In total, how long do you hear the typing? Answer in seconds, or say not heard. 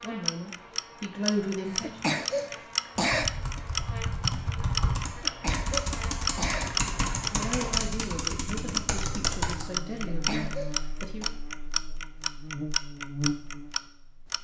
7 s.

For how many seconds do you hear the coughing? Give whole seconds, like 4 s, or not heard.
5 s.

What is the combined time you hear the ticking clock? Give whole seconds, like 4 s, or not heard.
14 s.